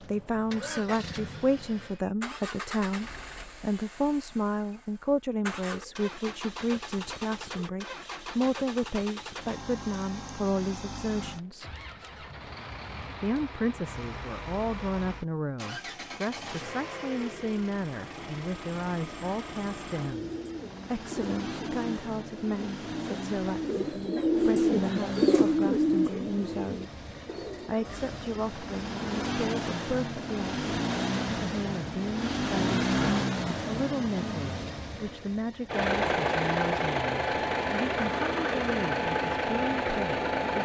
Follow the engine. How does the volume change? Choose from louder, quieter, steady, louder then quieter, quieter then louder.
louder.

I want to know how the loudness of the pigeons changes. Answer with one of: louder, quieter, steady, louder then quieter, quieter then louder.
louder then quieter.